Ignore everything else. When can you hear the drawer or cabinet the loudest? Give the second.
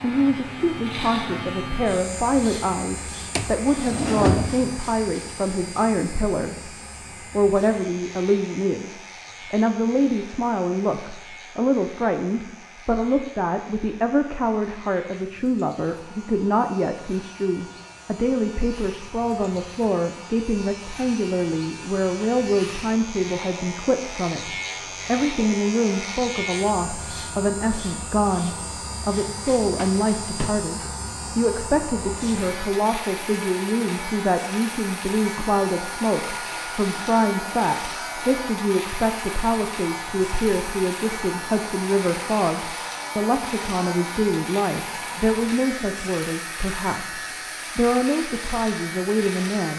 4 s.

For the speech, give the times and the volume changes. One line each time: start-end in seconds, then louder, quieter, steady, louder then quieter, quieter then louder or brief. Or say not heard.
0.0-49.7 steady.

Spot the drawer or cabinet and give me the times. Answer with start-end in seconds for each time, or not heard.
3.4-4.8, 29.8-30.6.